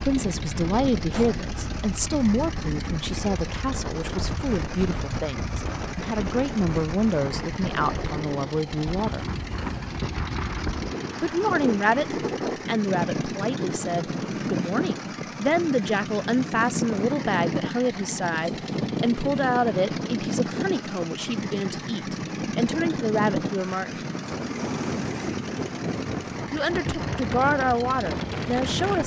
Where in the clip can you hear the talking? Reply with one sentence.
The talking can be heard from 0.0 to 9.3 s, from 11.2 to 24.0 s and from 26.5 to 29.0 s.